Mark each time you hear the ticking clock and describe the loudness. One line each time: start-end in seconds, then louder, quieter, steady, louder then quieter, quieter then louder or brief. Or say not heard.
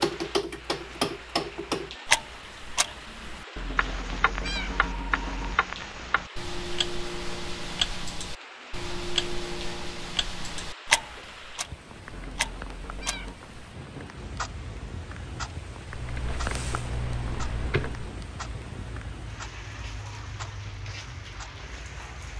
0.0-22.3 quieter.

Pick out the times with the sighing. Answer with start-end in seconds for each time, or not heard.
not heard.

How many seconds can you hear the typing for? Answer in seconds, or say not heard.
2 s.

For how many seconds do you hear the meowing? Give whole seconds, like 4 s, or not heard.
3 s.